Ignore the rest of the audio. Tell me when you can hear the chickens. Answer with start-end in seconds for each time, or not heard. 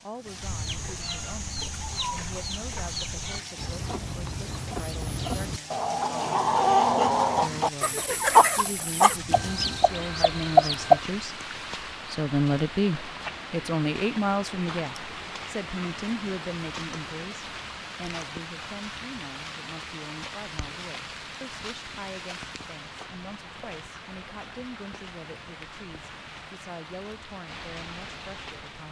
0.4-11.0.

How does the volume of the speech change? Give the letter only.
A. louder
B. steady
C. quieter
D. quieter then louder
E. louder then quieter
E.